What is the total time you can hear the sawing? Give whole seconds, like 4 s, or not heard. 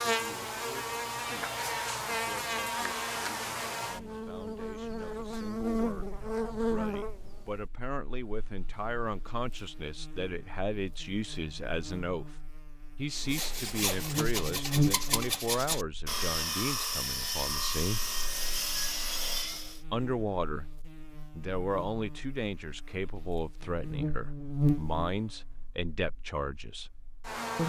7 s.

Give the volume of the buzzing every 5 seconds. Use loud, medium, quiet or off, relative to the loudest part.
loud, loud, loud, quiet, loud, medium.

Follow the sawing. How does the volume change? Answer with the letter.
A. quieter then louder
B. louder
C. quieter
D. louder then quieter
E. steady
E.